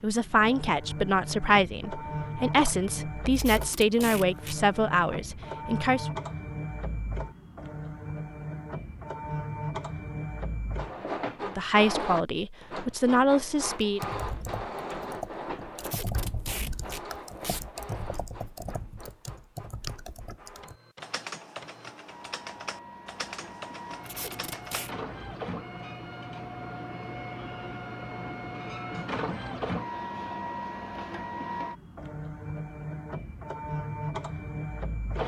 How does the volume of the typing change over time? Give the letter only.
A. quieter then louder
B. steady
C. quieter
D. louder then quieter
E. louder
B.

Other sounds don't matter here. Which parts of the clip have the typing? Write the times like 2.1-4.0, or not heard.
13.8-24.9.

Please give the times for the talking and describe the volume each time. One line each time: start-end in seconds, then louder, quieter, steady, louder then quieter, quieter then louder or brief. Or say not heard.
0.0-6.1 steady
11.4-14.0 brief.